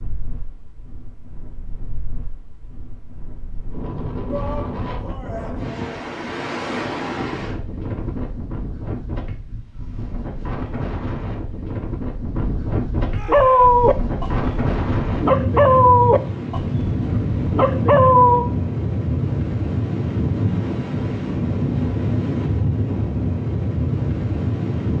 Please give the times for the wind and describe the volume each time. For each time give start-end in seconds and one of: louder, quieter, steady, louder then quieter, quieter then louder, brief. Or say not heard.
0.0-24.9 louder.